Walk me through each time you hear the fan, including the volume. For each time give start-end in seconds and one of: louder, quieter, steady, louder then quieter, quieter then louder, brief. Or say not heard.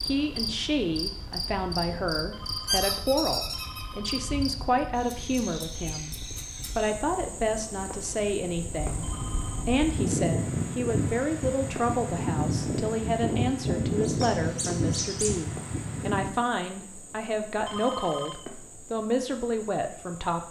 0.0-16.4 louder.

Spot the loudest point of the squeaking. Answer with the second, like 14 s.
3 s.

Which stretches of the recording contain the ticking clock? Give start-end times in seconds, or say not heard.
not heard.